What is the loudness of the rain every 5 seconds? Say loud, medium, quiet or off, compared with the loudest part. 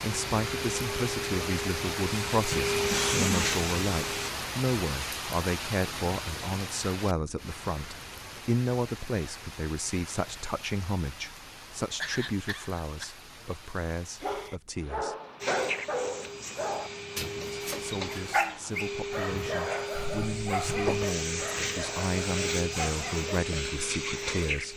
loud, medium, quiet, quiet, off.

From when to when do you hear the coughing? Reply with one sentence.
You can hear the coughing from 2.9 to 3.5 s, from 12.0 to 13.1 s and from 19.9 to 21.0 s.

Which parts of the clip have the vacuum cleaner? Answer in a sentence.
The vacuum cleaner can be heard from 0.1 to 4.3 s and from 15.4 to 24.7 s.